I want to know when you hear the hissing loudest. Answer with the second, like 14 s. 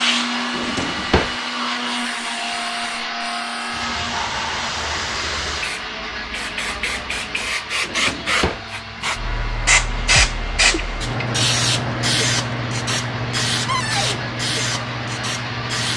10 s.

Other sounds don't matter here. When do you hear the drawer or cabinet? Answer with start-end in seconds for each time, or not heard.
0.5-1.4, 7.8-8.7, 13.7-14.2.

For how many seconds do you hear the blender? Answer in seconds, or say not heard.
16 s.